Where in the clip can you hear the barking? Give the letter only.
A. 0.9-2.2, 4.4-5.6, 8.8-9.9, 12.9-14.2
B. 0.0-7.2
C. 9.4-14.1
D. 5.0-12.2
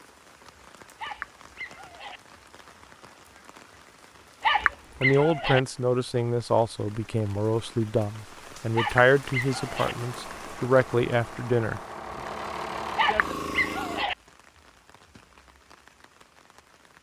A.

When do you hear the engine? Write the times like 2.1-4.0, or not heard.
9.4-14.1.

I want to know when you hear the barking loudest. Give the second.
5 s.